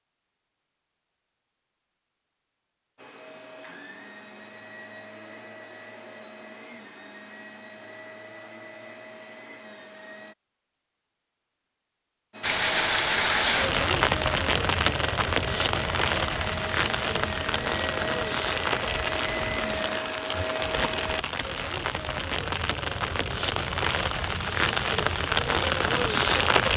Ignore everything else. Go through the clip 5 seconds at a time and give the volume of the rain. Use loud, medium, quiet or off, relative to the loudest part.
off, off, loud, medium, medium, loud.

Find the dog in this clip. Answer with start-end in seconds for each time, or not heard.
not heard.